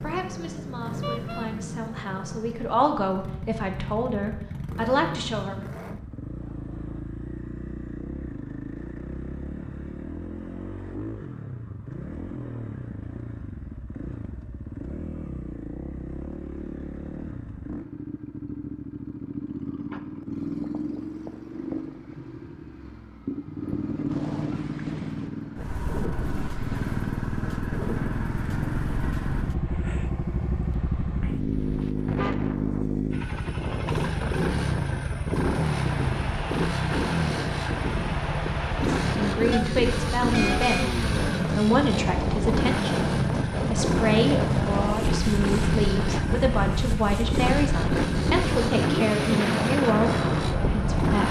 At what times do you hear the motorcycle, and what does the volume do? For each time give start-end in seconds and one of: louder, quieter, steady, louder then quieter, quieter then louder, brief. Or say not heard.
0.0-51.2 louder.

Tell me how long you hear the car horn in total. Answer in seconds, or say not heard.
3 s.